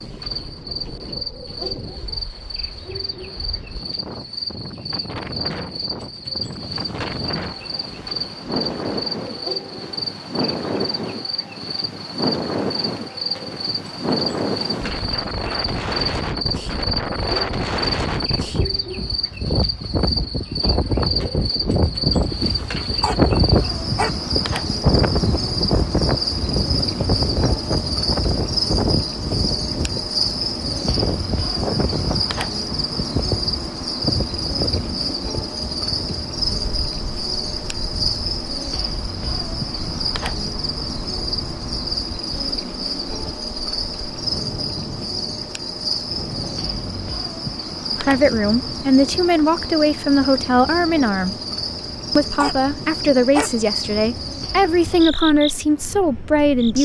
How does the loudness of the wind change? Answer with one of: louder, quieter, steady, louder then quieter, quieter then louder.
louder then quieter.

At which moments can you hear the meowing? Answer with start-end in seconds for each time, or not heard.
not heard.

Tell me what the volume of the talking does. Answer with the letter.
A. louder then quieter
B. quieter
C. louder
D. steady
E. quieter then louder
D.